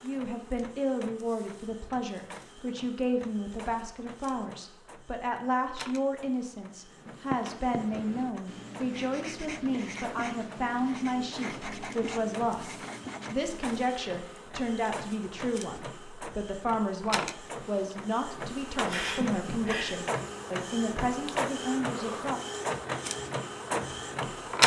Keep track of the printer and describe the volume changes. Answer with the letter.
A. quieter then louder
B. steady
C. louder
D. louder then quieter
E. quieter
C.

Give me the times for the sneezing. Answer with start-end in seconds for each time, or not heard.
18.9-20.1.